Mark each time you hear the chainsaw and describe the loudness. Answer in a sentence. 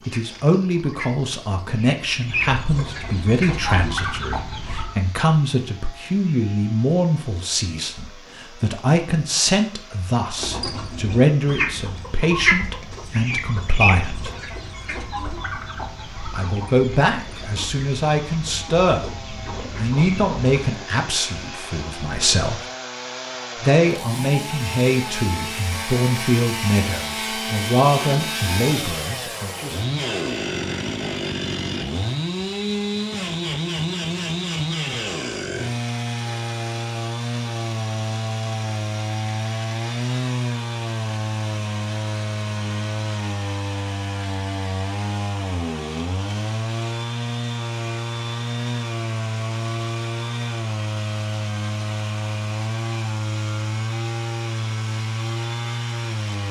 The chainsaw can be heard from 0.0 to 56.4 s, getting louder.